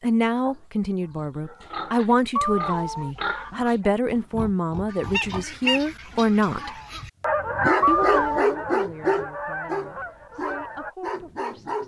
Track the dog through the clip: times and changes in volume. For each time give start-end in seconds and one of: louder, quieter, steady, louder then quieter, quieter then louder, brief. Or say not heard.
7.3-11.8 quieter.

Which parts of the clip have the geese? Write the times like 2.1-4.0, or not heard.
4.8-10.9.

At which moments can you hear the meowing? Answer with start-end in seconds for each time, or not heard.
2.4-3.6, 7.8-8.4.